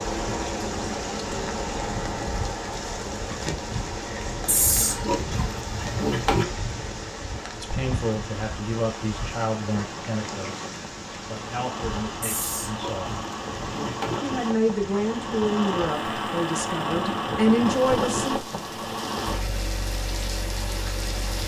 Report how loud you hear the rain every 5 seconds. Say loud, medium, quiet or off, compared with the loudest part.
loud, loud, medium, medium, loud.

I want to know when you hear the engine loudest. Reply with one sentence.
The loudest moment of the engine is at 18 seconds.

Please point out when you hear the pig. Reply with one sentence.
You can hear the pig from 4.5 to 6.5 s and from 12.2 to 14.2 s.